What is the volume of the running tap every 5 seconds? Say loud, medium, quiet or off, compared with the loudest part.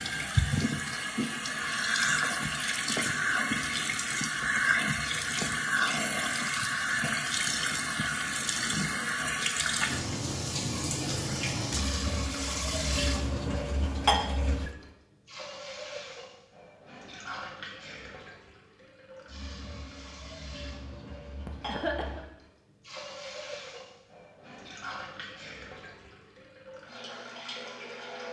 loud, loud, loud, quiet, quiet, quiet.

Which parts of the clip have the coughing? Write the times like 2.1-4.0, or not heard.
21.4-22.2.